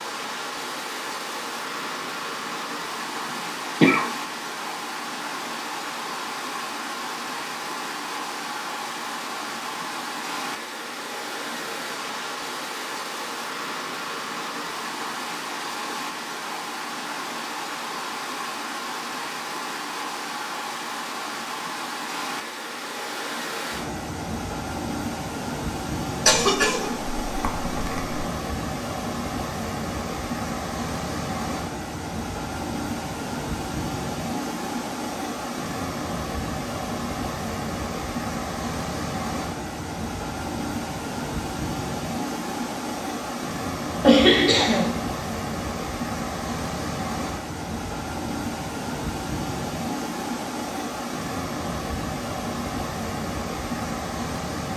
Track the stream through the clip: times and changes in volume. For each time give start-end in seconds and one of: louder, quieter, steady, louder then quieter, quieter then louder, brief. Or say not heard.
0.0-54.7 steady.